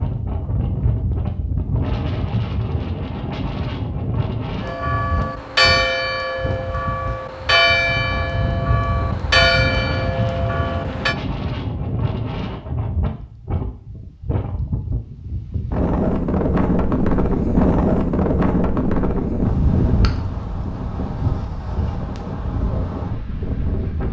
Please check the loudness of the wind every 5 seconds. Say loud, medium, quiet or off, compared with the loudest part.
medium, medium, medium, loud, medium.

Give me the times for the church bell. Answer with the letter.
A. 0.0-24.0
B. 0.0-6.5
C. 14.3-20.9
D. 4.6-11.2
D.